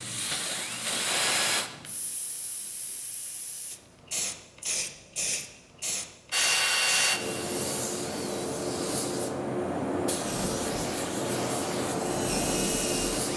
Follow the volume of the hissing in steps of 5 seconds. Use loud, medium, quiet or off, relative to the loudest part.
medium, loud, loud.